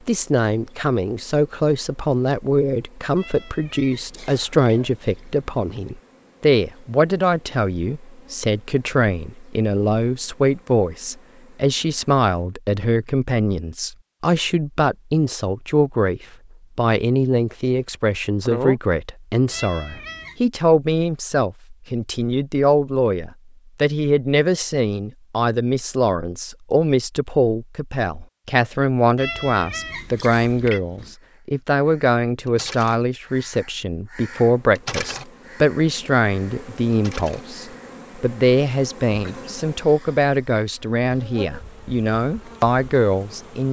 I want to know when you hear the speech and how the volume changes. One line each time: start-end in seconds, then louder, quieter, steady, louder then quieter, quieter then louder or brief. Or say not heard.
0.1-43.6 steady.